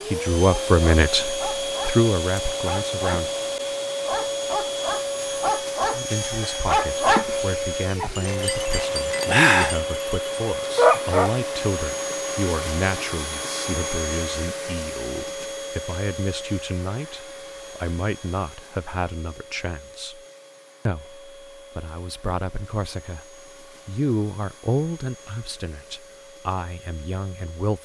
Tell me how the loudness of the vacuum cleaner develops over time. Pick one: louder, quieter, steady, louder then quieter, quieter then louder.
quieter.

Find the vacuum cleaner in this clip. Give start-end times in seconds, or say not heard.
0.0-27.8.